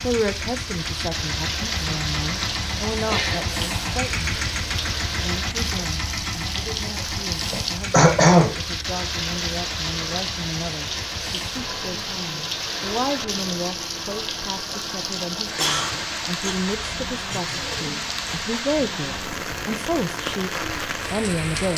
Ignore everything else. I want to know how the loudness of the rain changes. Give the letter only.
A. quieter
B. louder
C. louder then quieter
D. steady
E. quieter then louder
D.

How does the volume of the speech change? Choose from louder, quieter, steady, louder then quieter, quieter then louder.
quieter then louder.